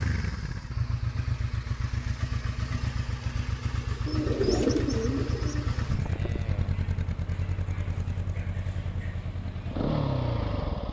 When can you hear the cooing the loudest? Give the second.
5 s.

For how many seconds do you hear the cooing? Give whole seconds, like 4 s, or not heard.
2 s.